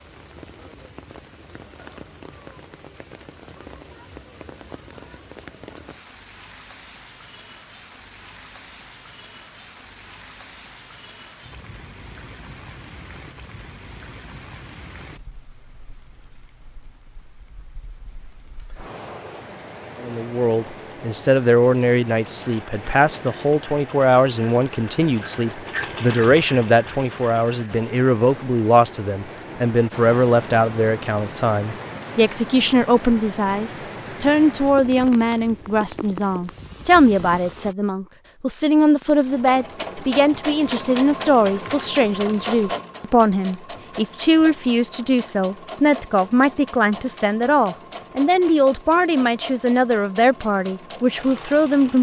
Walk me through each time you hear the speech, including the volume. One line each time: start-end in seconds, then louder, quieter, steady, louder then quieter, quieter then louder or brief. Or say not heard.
20.0-51.9 steady.